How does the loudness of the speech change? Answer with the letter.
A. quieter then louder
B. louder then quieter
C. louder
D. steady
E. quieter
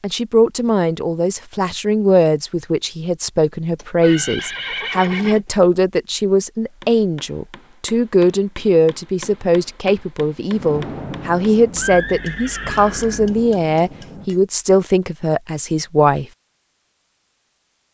D.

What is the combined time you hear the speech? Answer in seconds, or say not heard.
16 s.